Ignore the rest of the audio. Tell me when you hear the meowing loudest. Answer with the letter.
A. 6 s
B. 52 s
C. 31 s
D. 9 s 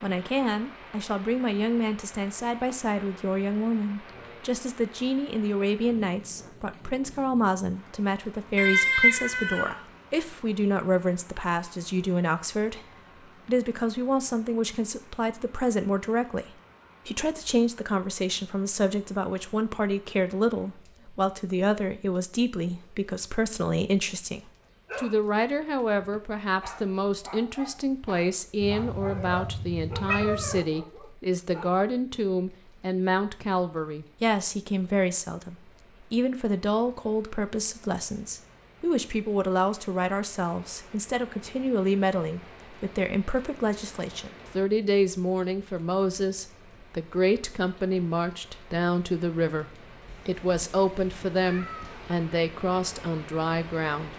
D.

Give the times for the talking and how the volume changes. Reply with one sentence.
The talking can be heard from 0.0 to 12.8 s, at a steady volume; and from 13.4 to 54.1 s, at a steady volume.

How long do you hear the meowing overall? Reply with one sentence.
You can hear the meowing for 5 seconds altogether.